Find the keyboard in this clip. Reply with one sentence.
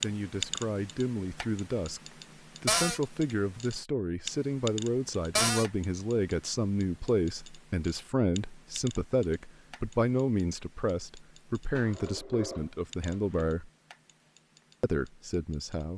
The keyboard can't be heard in this clip.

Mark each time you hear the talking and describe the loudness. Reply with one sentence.
The talking can be heard briefly from 0.0 to 2.0 s; from 2.6 to 13.7 s, at a steady volume; and briefly from 14.8 to 15.9 s.